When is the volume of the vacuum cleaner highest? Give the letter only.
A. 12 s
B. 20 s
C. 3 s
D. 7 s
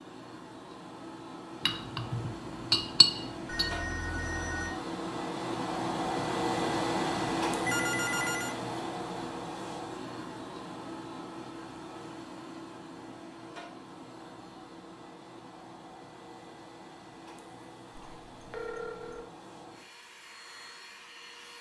D.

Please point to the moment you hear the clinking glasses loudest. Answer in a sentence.
The loudest moment of the clinking glasses is at 3 seconds.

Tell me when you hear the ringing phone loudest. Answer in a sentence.
The volume of the ringing phone peaks at 8 seconds.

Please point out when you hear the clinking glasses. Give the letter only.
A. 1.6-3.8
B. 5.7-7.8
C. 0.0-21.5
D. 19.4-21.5
A.